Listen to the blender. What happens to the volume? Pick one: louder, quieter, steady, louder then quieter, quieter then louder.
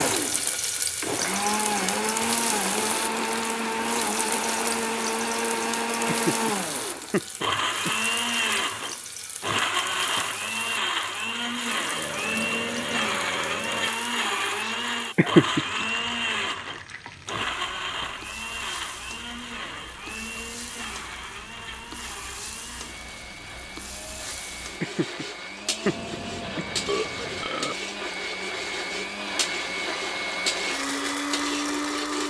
quieter then louder.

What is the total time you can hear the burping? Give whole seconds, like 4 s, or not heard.
4 s.